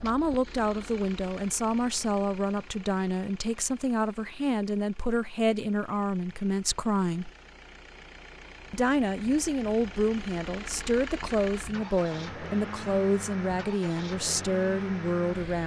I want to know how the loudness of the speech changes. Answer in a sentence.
The loudness of the speech stays about the same.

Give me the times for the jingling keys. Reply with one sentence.
You can't hear the jingling keys here.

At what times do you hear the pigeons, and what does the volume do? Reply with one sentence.
The pigeons can't be heard in this clip.